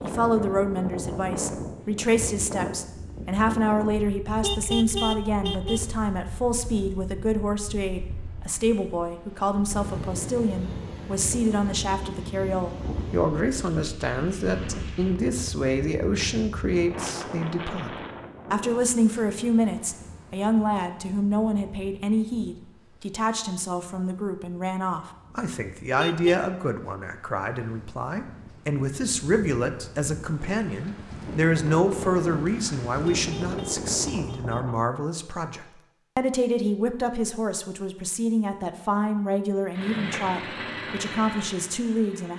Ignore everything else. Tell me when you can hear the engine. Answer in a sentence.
The engine can be heard from 39.7 to 42.3 s.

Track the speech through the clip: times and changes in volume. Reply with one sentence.
The speech can be heard from 0.0 to 42.3 s, at a steady volume.